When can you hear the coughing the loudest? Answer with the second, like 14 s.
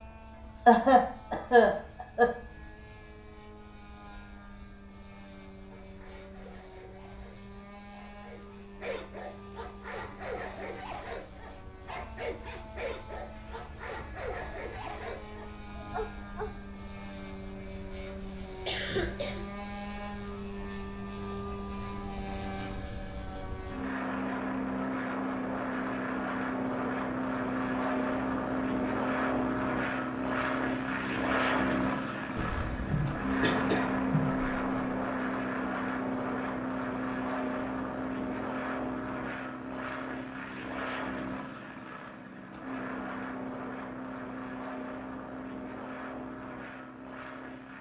1 s.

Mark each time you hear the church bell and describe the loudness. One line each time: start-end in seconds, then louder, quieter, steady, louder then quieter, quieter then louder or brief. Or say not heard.
not heard.